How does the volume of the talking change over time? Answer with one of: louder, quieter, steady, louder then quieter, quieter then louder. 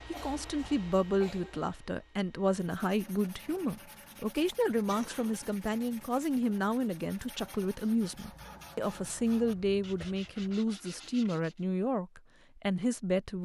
steady.